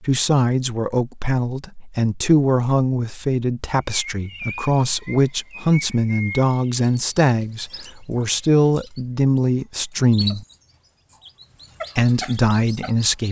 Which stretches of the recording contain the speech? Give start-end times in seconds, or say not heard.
0.0-10.4, 11.9-13.2.